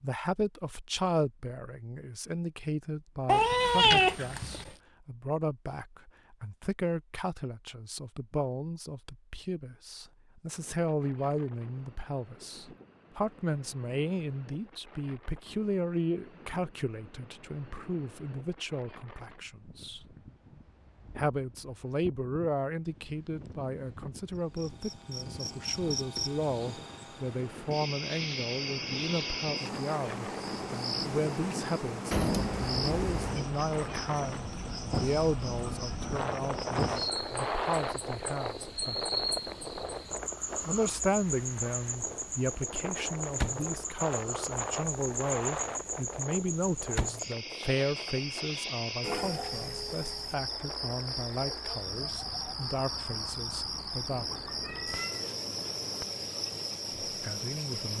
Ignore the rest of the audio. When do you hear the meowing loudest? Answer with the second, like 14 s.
4 s.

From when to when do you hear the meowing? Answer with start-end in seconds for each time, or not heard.
3.2-4.7, 32.1-33.4, 54.2-56.0.